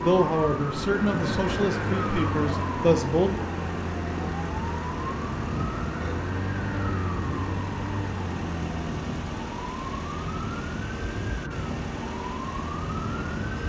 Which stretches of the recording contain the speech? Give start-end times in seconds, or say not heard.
0.0-3.4.